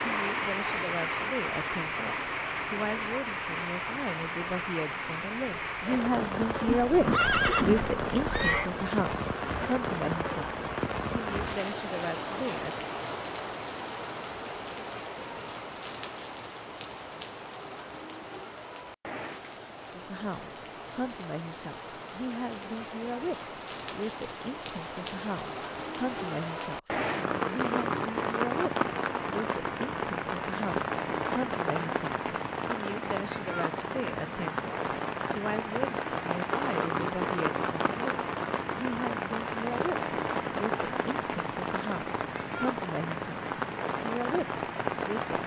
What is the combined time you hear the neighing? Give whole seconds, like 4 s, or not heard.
2 s.